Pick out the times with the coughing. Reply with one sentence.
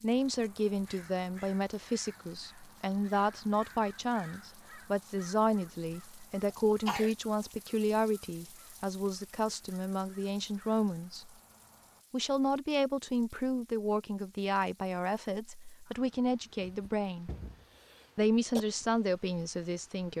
The coughing can be heard from 6.5 to 7.2 s and from 16.6 to 18.6 s.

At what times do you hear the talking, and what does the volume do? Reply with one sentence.
The talking can be heard from 0.0 to 11.3 s, at a steady volume; from 12.1 to 17.3 s, getting quieter then louder; and briefly from 18.1 to 20.1 s.